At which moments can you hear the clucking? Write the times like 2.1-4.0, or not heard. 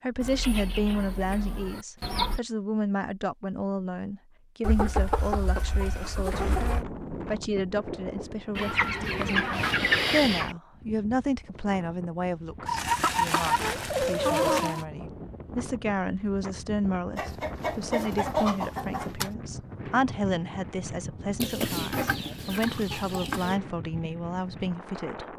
0.2-2.4, 4.6-6.8, 8.6-10.6, 12.7-14.8, 17.1-19.3, 21.4-23.6.